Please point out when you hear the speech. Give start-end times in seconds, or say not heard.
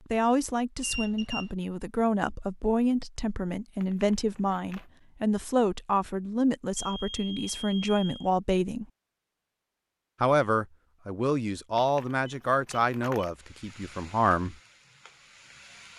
0.1-8.8, 10.2-14.6.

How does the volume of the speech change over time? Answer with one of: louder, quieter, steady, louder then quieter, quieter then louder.
steady.